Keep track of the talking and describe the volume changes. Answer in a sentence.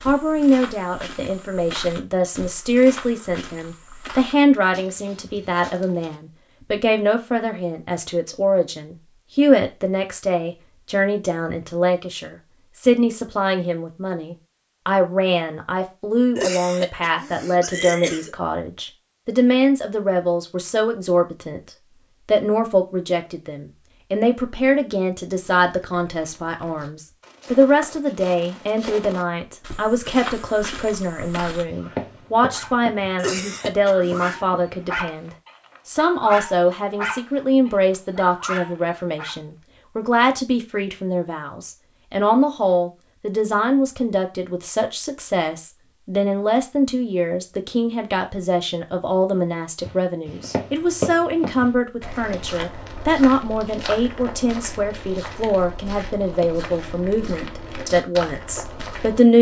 The volume of the talking stays about the same.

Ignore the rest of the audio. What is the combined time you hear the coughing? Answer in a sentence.
You can hear the coughing for 3 seconds altogether.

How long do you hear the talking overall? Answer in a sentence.
You can hear the talking for 59 seconds altogether.